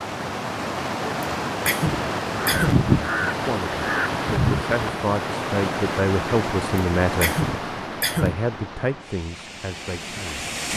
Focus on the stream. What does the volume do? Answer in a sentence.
The volume of the stream goes down.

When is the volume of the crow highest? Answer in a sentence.
The volume of the crow peaks at 3 seconds.